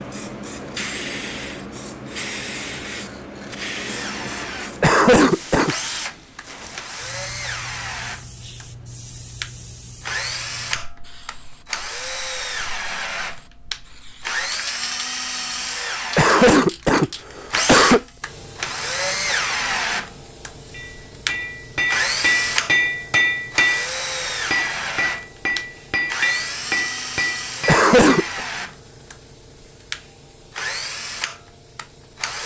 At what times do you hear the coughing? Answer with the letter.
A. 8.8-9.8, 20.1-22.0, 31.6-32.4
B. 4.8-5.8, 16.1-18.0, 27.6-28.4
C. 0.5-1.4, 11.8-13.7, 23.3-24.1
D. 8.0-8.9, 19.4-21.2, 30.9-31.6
B.